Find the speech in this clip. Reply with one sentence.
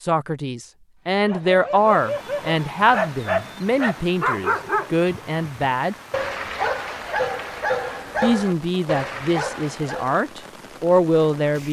The speech can be heard from 0.0 to 6.0 s and from 8.2 to 11.6 s.